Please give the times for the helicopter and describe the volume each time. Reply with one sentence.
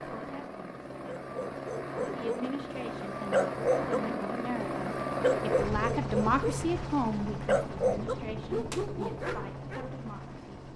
The helicopter can be heard from 0.0 to 10.7 s, getting louder then quieter.